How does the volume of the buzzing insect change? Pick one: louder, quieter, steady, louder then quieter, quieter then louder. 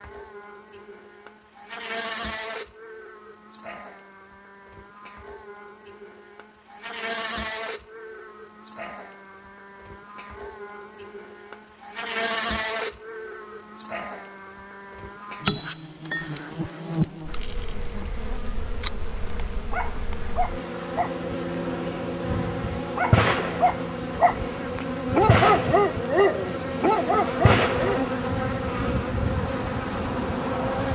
louder.